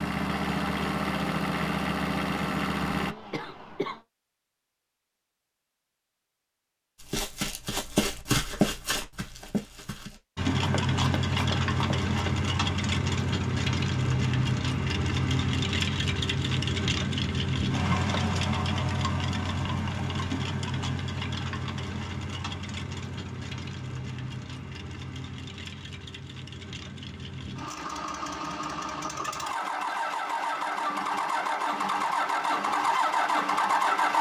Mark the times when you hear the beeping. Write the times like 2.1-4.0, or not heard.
not heard.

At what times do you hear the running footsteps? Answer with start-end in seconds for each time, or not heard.
7.0-12.3.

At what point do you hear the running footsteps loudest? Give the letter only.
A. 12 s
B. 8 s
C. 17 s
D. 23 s
B.